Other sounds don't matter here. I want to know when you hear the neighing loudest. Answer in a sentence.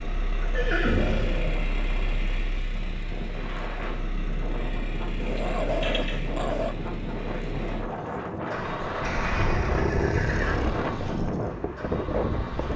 The loudest moment of the neighing is at 1 second.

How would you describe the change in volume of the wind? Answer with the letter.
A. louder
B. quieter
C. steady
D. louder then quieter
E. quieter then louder
A.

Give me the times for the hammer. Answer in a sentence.
The hammer can't be heard in this clip.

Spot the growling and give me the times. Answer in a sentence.
The growling can be heard from 0.4 to 1.7 s, from 5.2 to 6.8 s and from 9.3 to 10.9 s.